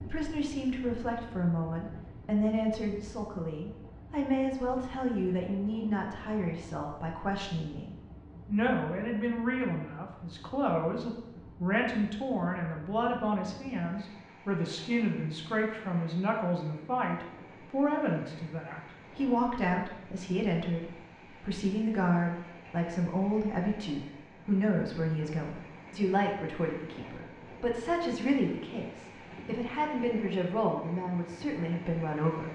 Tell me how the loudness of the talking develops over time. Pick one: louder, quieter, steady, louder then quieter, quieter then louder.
steady.